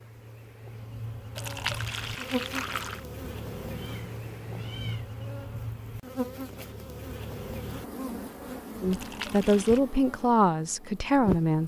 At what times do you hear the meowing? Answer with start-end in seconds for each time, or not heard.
3.2-5.0.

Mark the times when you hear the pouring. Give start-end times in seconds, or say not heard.
1.4-3.0, 8.9-9.8.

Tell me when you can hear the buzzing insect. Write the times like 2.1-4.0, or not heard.
0.0-11.6.